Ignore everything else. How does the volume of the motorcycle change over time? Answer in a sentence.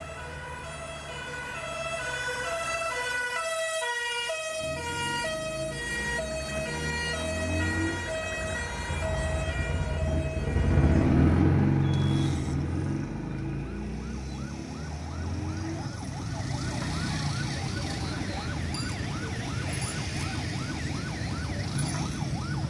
The volume of the motorcycle goes up, then down.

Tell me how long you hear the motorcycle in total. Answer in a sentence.
You can hear the motorcycle for 18 seconds altogether.